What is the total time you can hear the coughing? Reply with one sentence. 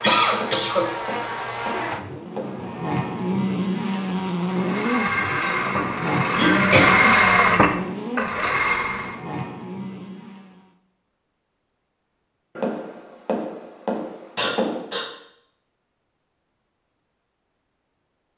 The coughing can be heard for 3 seconds in total.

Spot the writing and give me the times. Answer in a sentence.
You can hear the writing from 0.3 to 2.6 s and from 12.6 to 14.9 s.